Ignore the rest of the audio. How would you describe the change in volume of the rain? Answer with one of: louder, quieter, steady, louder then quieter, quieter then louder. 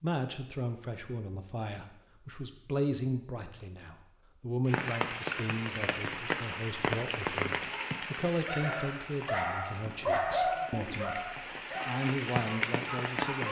quieter then louder.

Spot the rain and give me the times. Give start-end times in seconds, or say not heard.
4.7-13.4.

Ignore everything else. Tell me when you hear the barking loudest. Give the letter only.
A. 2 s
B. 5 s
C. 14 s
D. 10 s
D.